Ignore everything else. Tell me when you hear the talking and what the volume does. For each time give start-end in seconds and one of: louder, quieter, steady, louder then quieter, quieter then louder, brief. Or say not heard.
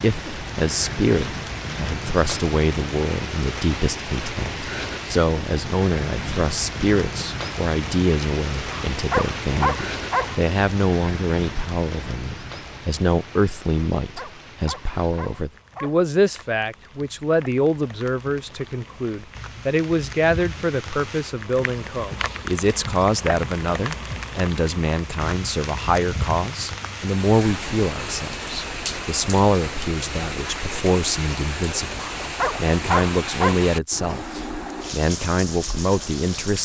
0.0-36.6 steady.